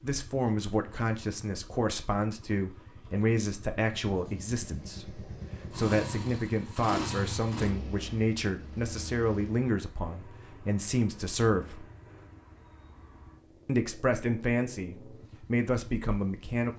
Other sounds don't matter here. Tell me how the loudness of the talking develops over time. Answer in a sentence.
The loudness of the talking stays about the same.